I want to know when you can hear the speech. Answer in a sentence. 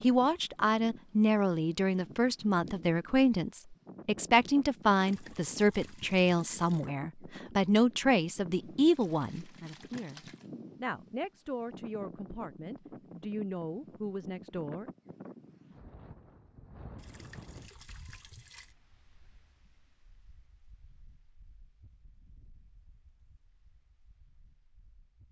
You can hear the speech from 0.0 to 14.9 s.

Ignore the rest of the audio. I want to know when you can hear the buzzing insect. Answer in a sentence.
You can't hear the buzzing insect here.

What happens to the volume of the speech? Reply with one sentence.
The loudness of the speech goes down.